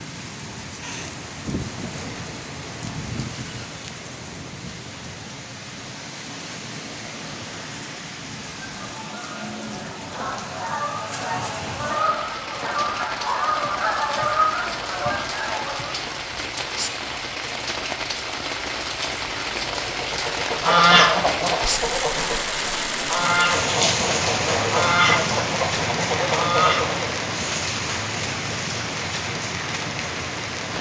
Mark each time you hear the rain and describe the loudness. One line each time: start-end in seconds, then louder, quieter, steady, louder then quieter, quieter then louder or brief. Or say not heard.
0.0-30.7 louder.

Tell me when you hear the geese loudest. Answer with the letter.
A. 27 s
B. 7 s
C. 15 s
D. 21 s
D.